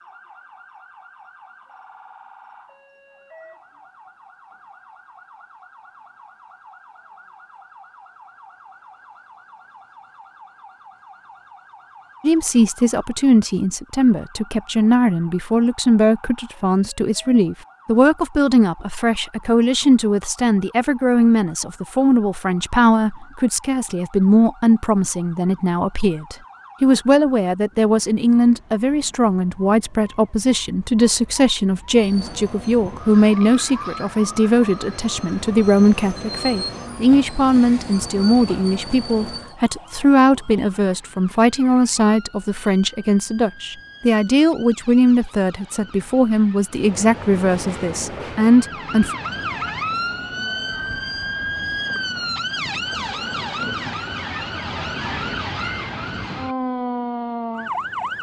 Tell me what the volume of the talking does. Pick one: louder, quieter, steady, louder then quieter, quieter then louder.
steady.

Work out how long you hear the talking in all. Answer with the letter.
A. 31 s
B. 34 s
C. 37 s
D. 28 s
C.